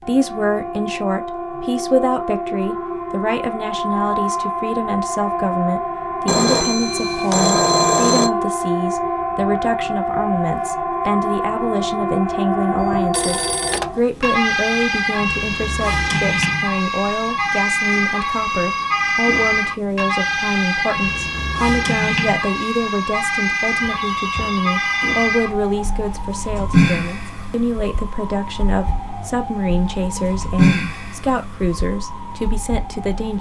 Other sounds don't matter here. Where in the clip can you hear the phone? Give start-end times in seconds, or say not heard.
6.2-8.3, 12.8-13.9, 23.8-25.1.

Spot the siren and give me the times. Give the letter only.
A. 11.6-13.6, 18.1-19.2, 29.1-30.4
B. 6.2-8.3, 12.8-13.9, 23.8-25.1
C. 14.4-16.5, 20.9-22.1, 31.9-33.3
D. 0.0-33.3
D.